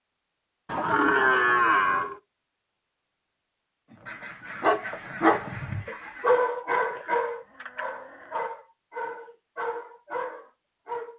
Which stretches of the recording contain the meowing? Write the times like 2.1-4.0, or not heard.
not heard.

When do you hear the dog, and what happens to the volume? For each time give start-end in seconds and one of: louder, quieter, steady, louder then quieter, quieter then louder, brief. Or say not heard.
3.9-11.1 quieter.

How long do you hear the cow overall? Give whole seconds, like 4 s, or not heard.
3 s.